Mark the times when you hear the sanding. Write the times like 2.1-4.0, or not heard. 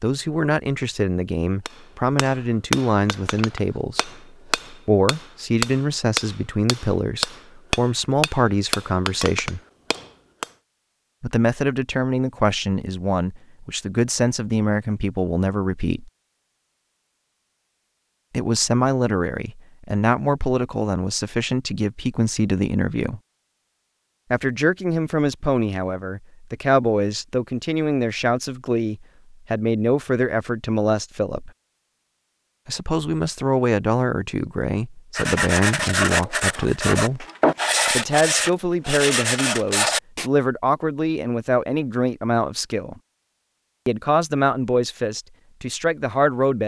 35.1-40.3.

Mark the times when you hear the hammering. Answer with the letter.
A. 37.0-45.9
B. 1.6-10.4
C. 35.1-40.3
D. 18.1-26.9
B.